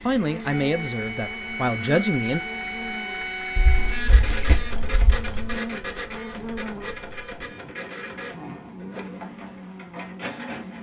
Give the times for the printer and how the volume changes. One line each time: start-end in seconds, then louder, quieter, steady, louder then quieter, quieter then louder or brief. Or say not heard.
0.0-10.7 quieter.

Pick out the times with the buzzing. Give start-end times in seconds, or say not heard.
0.0-10.7.